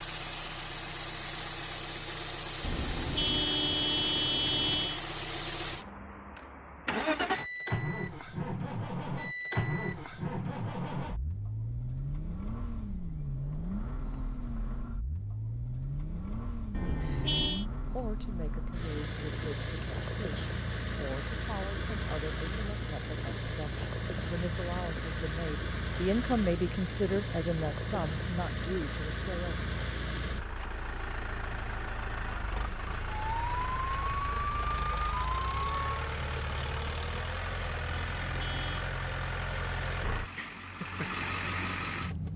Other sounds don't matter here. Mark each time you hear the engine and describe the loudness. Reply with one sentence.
You can hear the engine from 0.0 to 42.3 s, at a steady volume.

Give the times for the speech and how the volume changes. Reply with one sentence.
The speech can be heard from 17.9 to 29.6 s, getting louder.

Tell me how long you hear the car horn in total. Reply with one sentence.
You can hear the car horn for 4 seconds altogether.